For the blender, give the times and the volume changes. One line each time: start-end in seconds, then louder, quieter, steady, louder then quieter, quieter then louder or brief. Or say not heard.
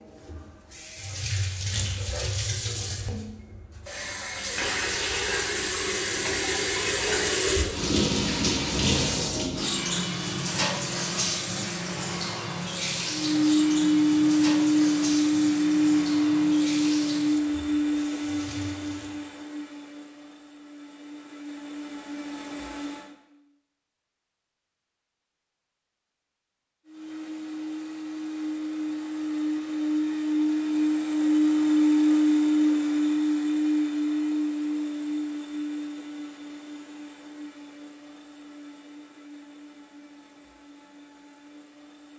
13.1-23.1 quieter
26.9-42.1 louder then quieter.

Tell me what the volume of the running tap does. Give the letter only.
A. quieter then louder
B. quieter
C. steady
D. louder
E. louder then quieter
E.